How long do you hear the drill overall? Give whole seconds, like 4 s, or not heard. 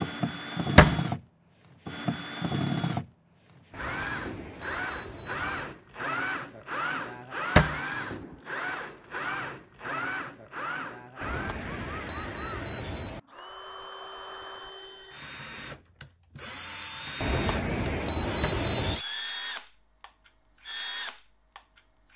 22 s.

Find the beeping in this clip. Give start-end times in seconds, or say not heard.
3.7-5.8, 11.2-13.2, 17.2-19.0.